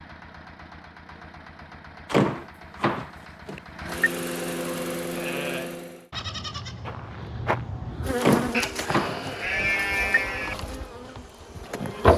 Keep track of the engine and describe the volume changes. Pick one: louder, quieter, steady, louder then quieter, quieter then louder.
louder.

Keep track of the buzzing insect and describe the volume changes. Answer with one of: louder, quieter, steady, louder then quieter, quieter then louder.
quieter.